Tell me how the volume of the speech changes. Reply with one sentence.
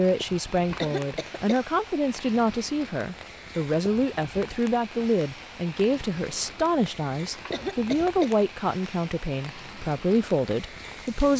The loudness of the speech stays about the same.